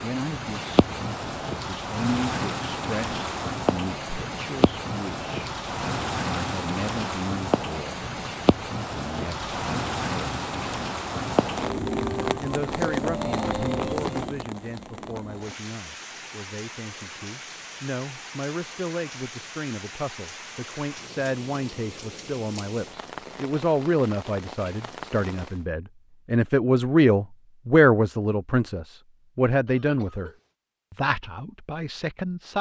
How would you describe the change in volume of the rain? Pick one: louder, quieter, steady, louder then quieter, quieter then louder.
quieter.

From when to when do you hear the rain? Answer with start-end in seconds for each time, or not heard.
0.0-25.6.